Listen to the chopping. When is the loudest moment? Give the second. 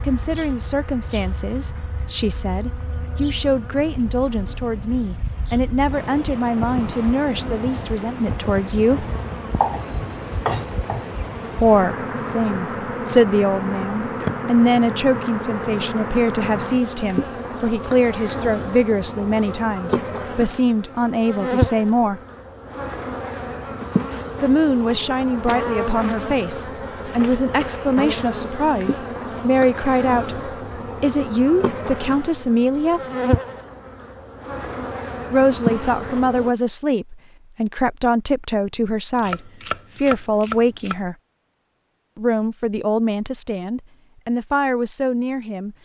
10 s.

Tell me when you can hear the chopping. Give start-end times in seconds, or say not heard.
9.6-11.1, 39.1-41.0.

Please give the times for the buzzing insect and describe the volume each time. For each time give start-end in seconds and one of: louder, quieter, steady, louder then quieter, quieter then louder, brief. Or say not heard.
0.0-36.5 louder.